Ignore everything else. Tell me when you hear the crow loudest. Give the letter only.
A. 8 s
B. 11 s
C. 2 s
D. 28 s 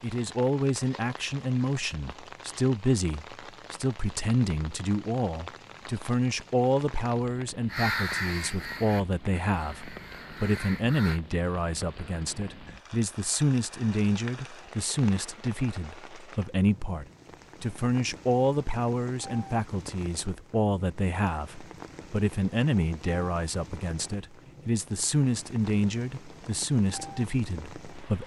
A.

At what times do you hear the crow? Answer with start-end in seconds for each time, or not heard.
7.7-11.2.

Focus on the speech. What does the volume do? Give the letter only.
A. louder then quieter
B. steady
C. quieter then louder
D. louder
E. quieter
B.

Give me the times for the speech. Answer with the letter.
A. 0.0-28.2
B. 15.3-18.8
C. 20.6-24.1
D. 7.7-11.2
A.